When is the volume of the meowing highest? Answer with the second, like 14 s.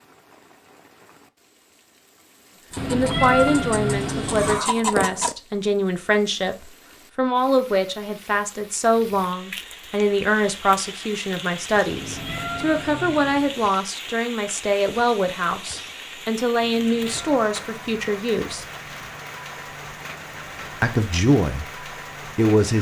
3 s.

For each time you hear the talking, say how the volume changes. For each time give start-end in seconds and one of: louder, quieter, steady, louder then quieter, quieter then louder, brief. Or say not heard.
2.9-18.6 steady
20.8-22.7 brief.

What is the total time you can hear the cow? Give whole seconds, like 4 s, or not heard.
not heard.